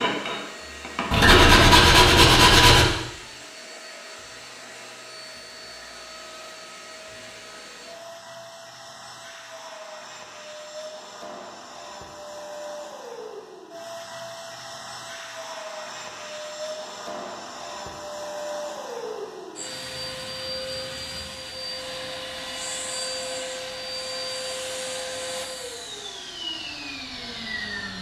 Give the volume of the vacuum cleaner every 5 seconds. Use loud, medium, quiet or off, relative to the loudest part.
medium, medium, medium, loud, loud, loud.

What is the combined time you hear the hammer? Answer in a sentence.
You can hear the hammer for 2 seconds altogether.